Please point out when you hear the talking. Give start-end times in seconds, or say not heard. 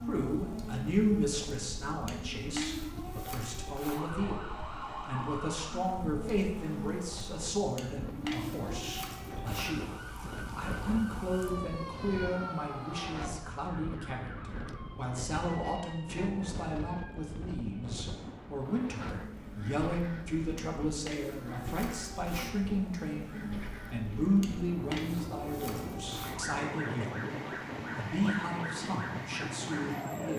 0.0-30.3.